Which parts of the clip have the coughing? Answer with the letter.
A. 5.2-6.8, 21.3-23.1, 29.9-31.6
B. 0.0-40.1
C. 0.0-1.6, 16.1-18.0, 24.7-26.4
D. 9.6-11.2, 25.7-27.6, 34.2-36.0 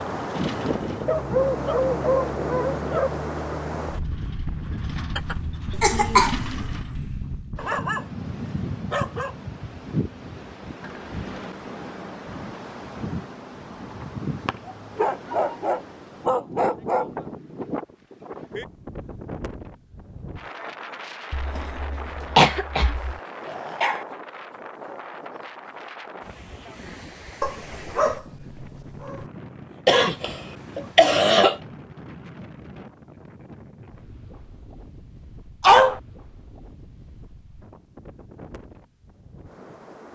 A.